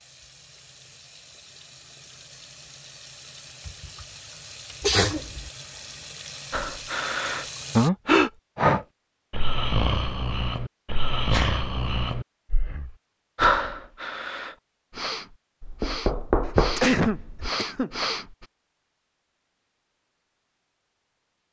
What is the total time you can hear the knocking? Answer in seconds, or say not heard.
2 s.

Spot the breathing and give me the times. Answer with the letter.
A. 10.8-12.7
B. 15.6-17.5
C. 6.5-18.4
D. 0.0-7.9
C.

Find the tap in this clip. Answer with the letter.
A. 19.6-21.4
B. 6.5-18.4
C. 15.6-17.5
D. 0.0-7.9
D.